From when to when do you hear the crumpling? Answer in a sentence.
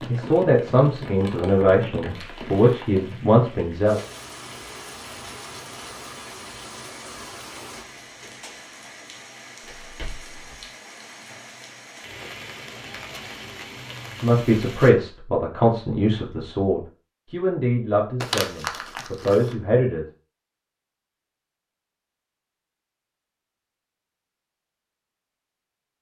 The crumpling can be heard from 2.1 to 3.2 s, from 9.6 to 10.7 s and from 18.2 to 19.6 s.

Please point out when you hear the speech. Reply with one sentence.
The speech can be heard from 0.1 to 4.0 s and from 14.2 to 20.1 s.